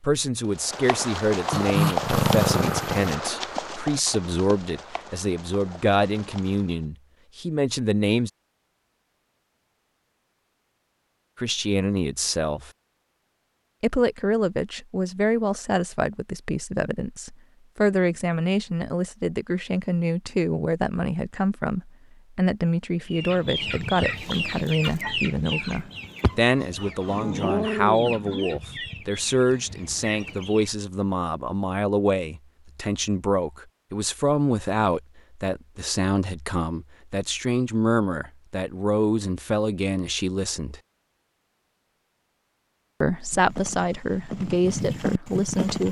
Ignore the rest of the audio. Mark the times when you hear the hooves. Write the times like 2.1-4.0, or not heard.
0.5-6.8, 43.3-45.8.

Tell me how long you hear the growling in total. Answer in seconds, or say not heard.
4 s.